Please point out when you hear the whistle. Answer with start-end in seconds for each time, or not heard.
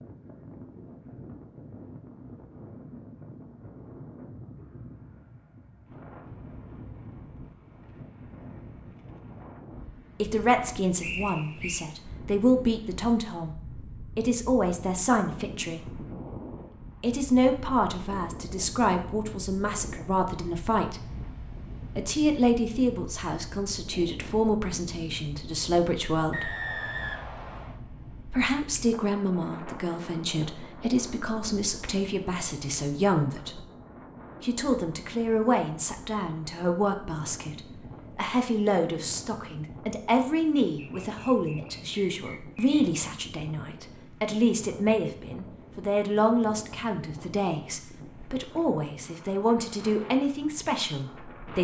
11.0-11.8, 26.3-27.8, 40.8-42.6.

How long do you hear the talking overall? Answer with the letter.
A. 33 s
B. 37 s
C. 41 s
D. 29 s
B.